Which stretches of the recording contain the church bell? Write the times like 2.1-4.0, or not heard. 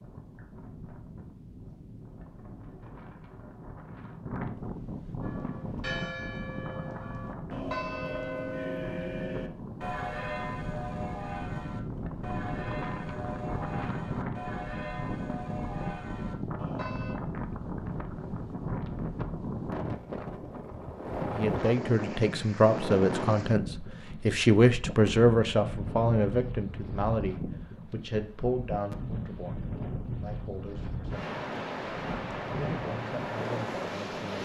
5.2-17.1.